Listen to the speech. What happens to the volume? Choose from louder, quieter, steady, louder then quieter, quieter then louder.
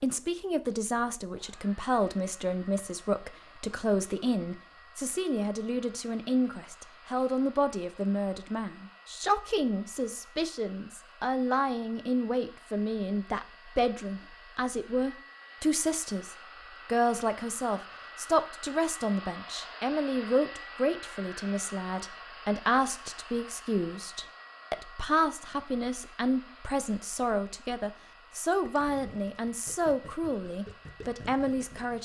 steady.